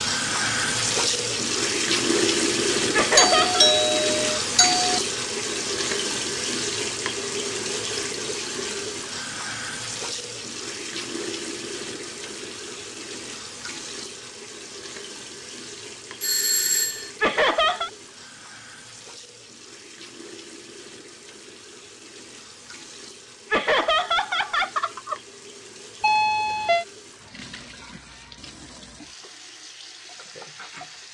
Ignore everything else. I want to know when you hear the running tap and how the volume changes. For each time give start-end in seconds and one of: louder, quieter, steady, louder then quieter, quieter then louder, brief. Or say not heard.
0.0-31.0 quieter.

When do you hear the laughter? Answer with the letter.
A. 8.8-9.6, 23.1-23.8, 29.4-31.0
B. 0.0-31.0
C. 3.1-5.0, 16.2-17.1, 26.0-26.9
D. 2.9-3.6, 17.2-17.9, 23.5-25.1
D.